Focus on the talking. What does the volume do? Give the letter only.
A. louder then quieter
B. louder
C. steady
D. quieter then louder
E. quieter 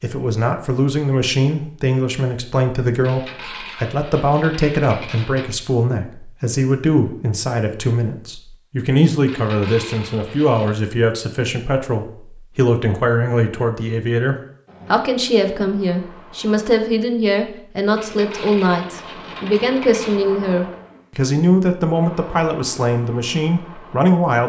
C.